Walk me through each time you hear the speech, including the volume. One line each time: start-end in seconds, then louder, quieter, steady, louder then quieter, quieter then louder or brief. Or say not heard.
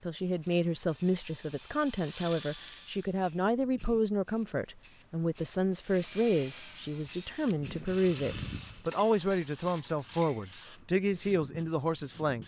0.0-12.4 steady.